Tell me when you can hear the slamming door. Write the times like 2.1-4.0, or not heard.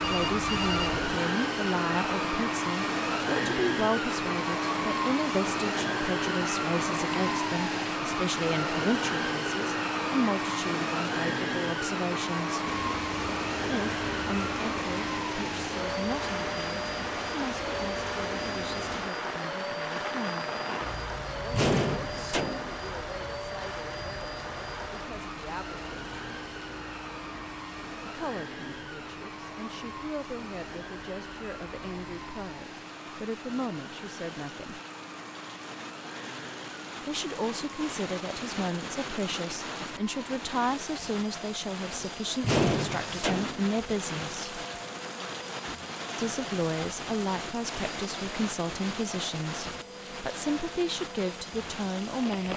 21.5-22.8, 42.4-43.7.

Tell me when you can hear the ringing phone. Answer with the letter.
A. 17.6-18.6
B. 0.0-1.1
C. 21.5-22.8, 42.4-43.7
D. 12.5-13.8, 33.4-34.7
B.